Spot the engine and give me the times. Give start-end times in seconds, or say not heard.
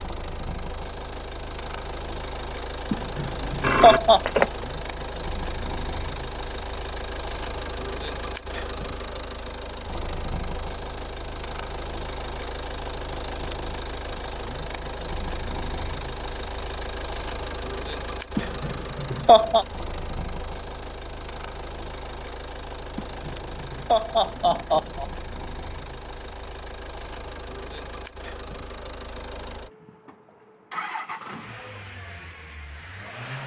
0.0-33.4.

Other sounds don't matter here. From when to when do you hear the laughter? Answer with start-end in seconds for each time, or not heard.
2.9-4.2, 18.4-19.6, 22.9-25.1.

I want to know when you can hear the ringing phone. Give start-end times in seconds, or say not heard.
3.5-4.7.